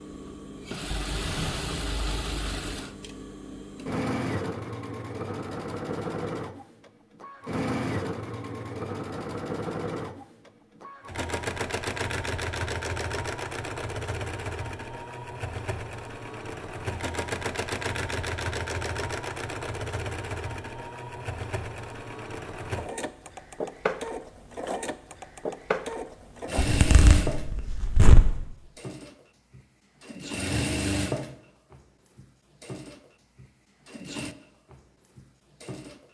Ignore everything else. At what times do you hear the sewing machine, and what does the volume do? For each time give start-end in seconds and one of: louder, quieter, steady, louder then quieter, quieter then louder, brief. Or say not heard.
0.0-36.0 steady.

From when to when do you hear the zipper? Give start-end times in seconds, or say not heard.
26.6-28.4.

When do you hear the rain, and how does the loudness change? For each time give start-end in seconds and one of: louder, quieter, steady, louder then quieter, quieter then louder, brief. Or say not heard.
not heard.